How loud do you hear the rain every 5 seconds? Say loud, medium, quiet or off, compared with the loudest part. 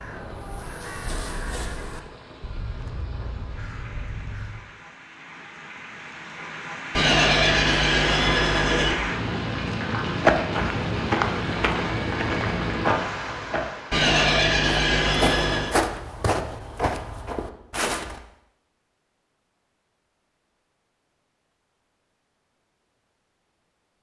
quiet, loud, loud, off, off.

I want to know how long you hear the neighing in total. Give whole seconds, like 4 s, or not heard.
4 s.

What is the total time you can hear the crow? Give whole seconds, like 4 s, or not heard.
5 s.